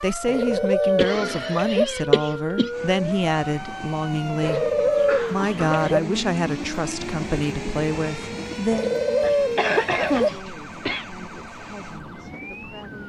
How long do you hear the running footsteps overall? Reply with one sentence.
You can't hear the running footsteps here.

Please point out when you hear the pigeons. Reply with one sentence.
The pigeons can be heard from 0.2 to 1.9 s, from 4.4 to 6.0 s and from 8.7 to 10.3 s.